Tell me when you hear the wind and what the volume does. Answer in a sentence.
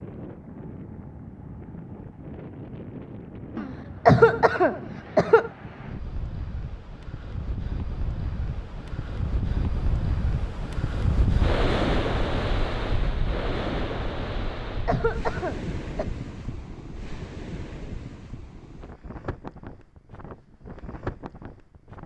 The wind can be heard from 0.0 to 22.0 s, getting louder then quieter.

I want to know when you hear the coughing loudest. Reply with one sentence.
The volume of the coughing peaks at 4 seconds.